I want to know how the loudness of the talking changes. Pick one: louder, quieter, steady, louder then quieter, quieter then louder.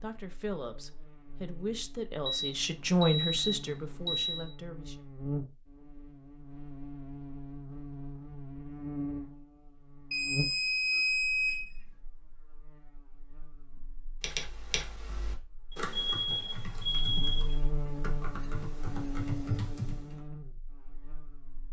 louder then quieter.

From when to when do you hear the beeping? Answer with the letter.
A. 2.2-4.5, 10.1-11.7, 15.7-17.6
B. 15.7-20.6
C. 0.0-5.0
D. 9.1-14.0
A.